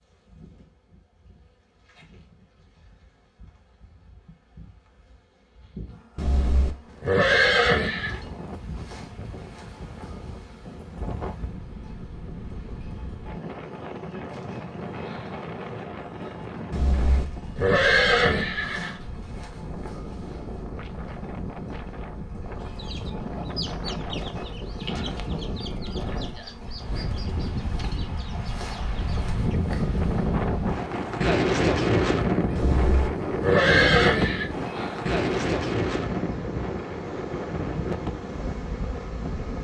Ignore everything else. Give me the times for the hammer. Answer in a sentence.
The hammer can't be heard in this clip.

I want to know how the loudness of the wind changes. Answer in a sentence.
The volume of the wind goes up.